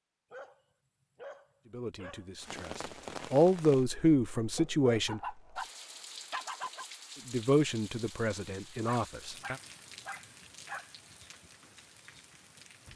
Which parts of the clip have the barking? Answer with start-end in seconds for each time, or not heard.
0.3-2.3, 4.5-6.8, 8.8-10.9.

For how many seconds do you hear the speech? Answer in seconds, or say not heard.
6 s.